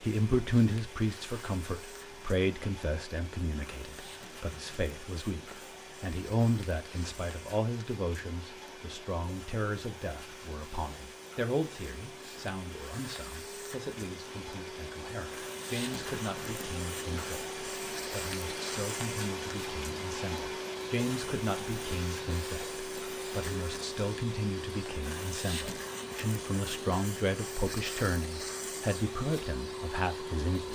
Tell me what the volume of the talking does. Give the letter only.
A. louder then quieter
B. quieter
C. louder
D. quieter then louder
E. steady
D.